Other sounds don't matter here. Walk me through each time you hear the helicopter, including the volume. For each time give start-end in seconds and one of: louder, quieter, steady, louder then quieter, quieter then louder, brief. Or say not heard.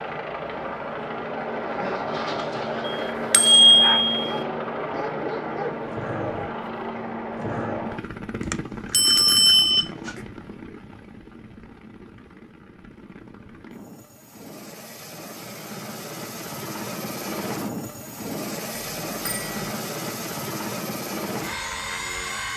0.0-22.5 quieter then louder.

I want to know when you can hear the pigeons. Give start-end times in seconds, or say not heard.
not heard.